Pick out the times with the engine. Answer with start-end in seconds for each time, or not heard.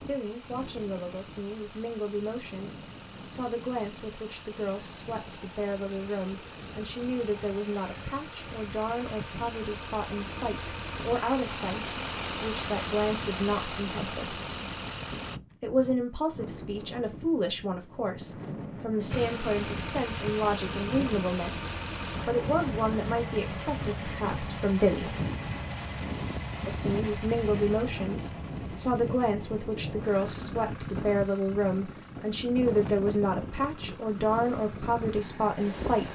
0.0-15.4, 19.1-36.1.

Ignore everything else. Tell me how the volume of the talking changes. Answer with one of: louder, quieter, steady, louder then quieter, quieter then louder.
louder.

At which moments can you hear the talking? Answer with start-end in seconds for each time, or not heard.
0.1-14.6, 15.6-25.1, 26.6-36.1.